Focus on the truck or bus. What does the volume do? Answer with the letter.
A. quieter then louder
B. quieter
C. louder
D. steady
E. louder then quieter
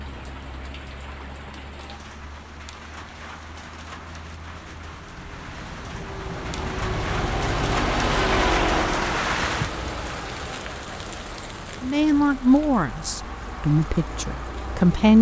E.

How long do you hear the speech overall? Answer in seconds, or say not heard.
3 s.